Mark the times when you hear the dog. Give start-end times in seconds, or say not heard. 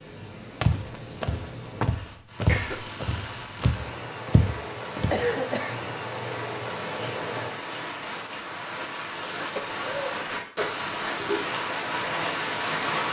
not heard.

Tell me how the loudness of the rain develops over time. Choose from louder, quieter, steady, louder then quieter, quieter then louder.
louder.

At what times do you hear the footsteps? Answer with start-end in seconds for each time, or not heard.
0.6-5.2.